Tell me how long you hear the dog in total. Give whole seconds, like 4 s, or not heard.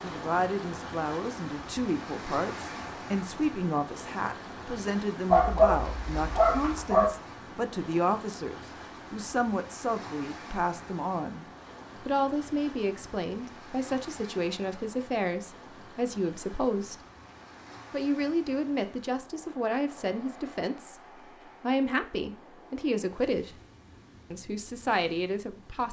2 s.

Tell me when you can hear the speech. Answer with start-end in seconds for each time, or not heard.
0.0-16.9, 17.9-23.6, 24.3-25.8.